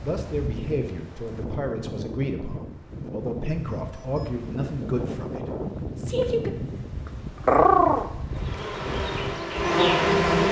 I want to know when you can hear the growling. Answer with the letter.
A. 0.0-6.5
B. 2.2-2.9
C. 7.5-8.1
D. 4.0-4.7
C.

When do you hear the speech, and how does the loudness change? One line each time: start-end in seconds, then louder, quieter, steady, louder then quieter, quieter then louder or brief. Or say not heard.
0.0-6.5 steady.